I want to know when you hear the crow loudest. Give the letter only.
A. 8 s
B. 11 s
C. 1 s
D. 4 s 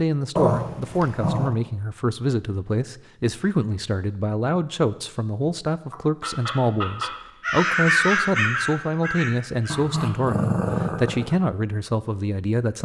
A.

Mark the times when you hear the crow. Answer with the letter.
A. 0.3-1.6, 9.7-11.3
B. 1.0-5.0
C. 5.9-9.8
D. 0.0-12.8
C.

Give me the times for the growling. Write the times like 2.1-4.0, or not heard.
0.3-1.6, 9.7-11.3.